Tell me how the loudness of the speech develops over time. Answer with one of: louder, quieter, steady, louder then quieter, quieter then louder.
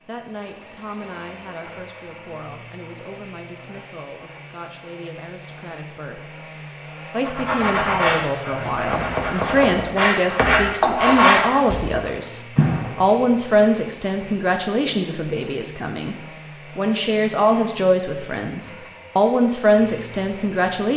louder.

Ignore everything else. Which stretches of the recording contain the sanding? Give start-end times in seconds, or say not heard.
7.2-13.1.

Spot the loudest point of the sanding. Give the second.
11 s.